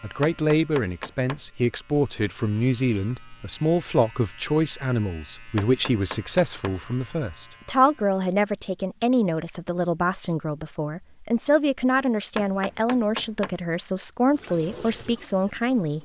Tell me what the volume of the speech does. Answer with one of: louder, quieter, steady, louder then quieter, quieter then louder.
steady.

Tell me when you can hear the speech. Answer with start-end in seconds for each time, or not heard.
0.0-16.0.